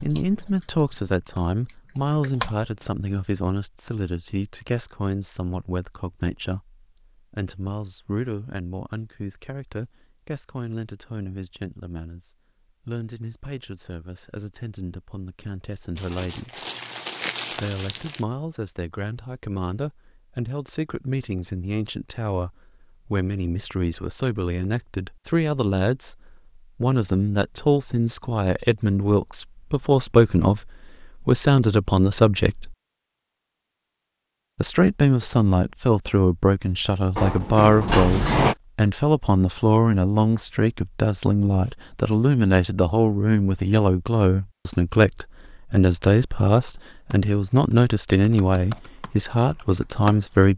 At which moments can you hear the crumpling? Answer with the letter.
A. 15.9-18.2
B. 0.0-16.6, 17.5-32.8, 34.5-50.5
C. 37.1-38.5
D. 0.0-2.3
A.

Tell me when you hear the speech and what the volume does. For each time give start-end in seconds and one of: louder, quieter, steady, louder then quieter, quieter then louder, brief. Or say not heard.
0.0-16.6 quieter
17.5-32.8 louder
34.5-50.5 steady.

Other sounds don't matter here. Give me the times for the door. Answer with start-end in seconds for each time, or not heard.
37.1-38.5.